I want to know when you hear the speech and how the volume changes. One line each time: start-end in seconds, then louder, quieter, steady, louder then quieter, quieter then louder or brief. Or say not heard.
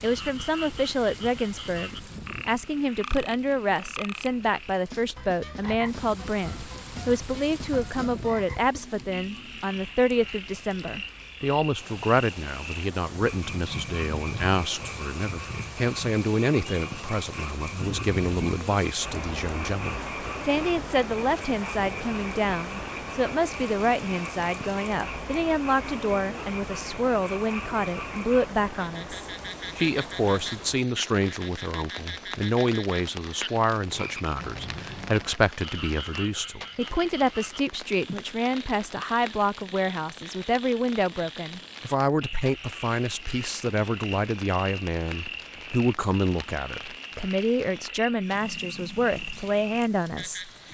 0.0-50.5 steady.